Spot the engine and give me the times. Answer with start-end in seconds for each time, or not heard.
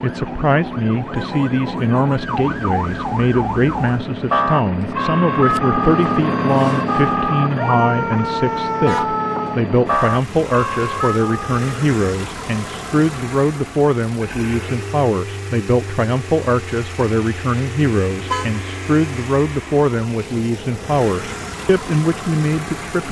0.0-23.0.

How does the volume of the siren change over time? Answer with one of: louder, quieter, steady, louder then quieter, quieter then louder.
louder.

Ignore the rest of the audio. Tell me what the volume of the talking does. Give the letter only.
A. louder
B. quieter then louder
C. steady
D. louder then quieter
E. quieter
C.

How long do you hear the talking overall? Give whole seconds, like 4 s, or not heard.
23 s.